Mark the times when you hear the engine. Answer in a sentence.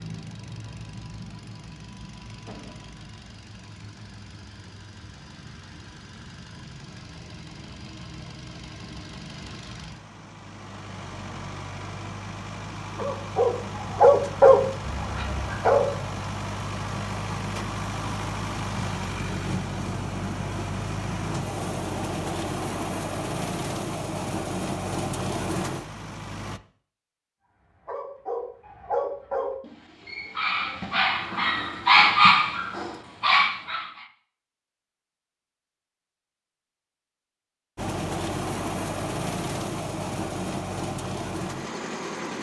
You can hear the engine from 0.0 to 26.6 s and from 37.8 to 42.3 s.